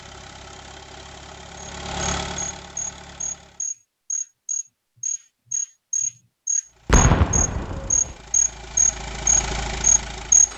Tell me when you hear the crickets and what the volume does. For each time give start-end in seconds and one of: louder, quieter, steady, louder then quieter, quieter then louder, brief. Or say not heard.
1.6-10.5 louder.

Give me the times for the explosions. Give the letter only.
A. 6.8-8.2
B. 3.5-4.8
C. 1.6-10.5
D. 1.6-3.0
A.